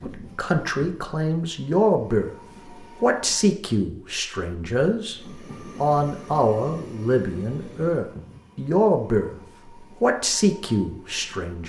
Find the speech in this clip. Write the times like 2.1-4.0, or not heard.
0.0-2.3, 3.0-5.2, 5.8-9.3, 10.0-11.6.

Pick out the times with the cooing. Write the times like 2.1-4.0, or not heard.
not heard.